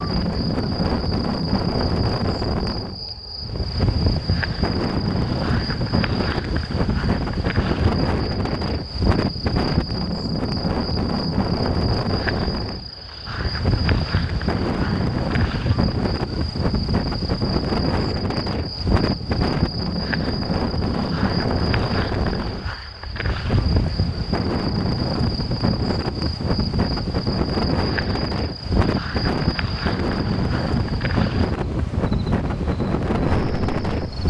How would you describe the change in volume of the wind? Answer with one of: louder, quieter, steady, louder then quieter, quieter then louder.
steady.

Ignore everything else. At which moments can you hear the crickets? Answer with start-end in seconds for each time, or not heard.
0.0-34.2.